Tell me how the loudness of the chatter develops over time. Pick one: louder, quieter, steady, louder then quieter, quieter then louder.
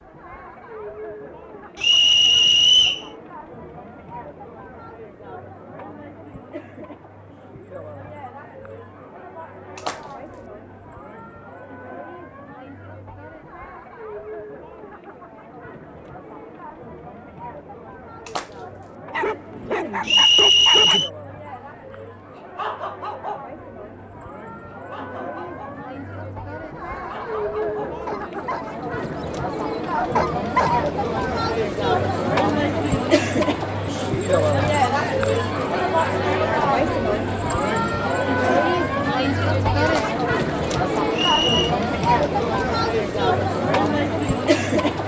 louder.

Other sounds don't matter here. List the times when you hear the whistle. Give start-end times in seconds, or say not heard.
1.8-3.0, 20.1-21.1, 41.1-41.8.